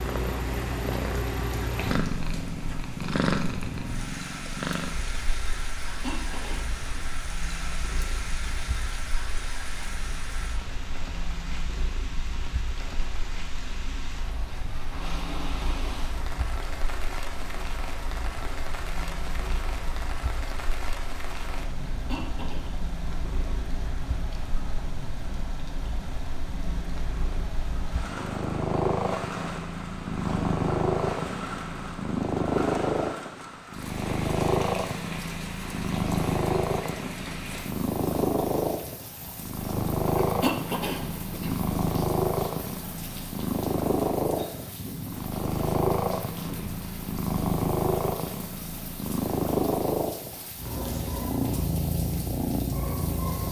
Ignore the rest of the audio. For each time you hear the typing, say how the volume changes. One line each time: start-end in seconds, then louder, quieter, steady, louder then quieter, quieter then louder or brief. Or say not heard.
not heard.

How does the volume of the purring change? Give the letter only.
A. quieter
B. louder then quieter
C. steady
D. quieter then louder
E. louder
D.